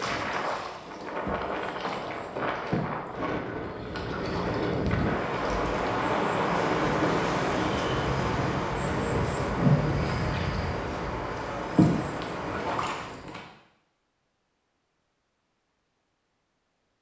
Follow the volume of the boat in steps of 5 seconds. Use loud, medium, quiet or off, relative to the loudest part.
medium, loud, loud, off.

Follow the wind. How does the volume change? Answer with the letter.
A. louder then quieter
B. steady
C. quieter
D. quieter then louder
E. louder
A.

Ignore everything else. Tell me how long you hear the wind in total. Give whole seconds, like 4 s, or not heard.
13 s.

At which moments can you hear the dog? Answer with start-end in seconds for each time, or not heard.
not heard.